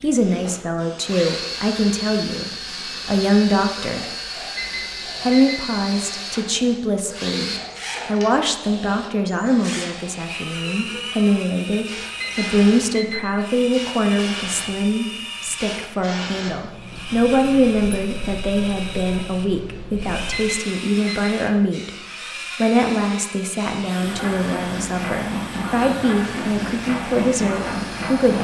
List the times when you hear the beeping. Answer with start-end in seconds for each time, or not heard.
4.5-5.7, 12.2-13.3, 20.3-21.4.